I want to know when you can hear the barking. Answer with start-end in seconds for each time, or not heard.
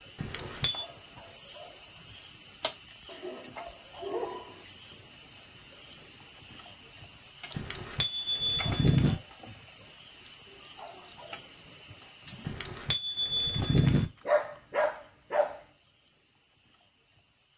3.0-4.7, 13.8-15.6.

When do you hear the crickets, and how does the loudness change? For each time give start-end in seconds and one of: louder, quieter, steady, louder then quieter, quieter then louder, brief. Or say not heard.
0.0-17.5 quieter.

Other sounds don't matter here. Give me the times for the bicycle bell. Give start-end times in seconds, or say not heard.
0.2-0.8, 7.5-9.2, 12.4-14.1.